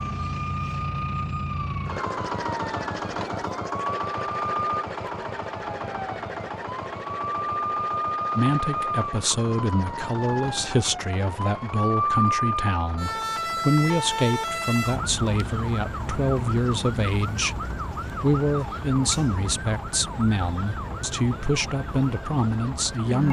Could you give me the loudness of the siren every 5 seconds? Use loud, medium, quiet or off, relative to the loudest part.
medium, loud, loud, medium, medium.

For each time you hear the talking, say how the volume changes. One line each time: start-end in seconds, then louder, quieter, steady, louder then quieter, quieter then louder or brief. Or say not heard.
8.3-23.2 steady.